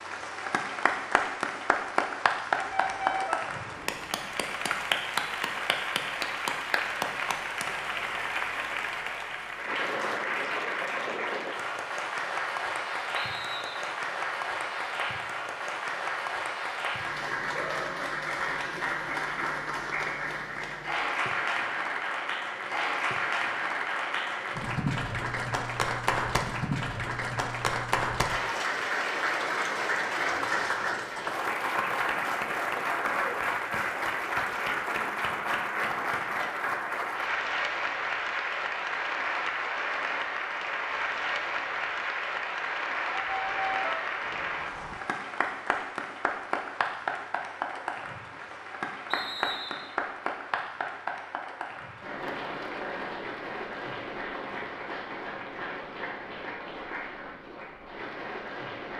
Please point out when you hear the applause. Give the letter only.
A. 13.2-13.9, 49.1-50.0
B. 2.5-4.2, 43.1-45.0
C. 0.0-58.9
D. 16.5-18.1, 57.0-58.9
C.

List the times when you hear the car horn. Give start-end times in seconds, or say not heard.
2.5-4.2, 43.1-45.0.